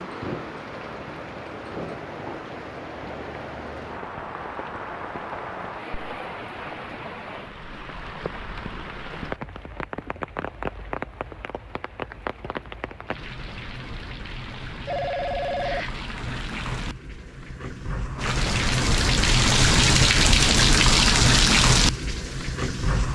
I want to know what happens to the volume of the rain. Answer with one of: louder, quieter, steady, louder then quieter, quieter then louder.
louder.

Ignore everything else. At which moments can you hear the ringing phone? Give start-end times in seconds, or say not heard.
14.8-16.1.